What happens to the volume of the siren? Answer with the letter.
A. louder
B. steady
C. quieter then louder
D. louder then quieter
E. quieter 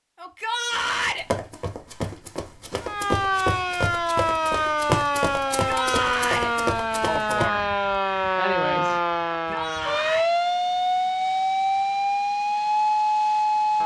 B.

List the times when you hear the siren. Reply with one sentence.
You can hear the siren from 2.8 to 13.8 s.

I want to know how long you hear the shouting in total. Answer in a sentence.
The shouting can be heard for 3 seconds in total.